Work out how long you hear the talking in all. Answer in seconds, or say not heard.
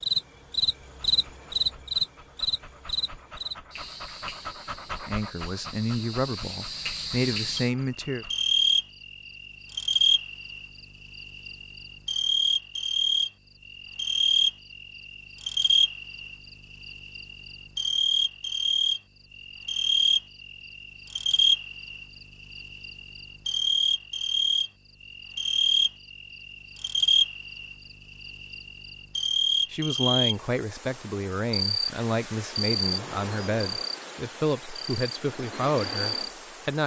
10 s.